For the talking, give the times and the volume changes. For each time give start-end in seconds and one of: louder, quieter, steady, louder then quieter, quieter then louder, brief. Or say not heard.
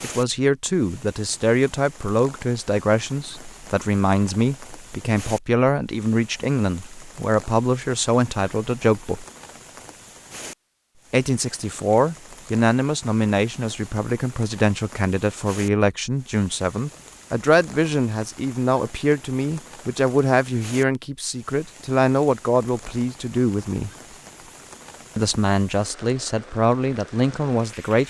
0.0-9.2 steady
11.1-23.9 steady
25.1-28.0 brief.